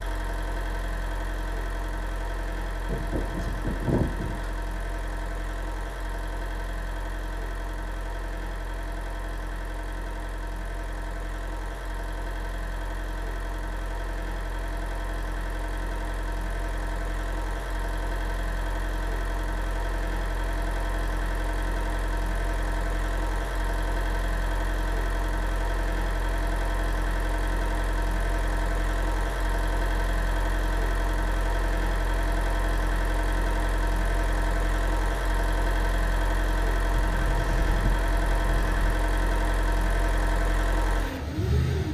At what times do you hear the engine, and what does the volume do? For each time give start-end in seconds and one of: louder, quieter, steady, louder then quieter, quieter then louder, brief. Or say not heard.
0.0-41.8 louder.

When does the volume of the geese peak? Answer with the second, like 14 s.
4 s.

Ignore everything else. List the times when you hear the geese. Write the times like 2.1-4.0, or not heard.
2.9-4.5, 37.0-39.0.